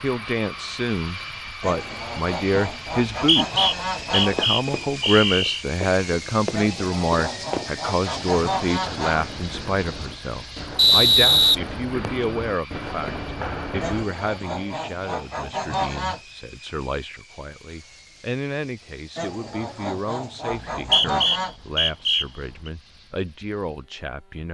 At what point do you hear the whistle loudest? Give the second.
11 s.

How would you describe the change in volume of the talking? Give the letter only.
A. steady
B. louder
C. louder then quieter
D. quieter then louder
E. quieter
E.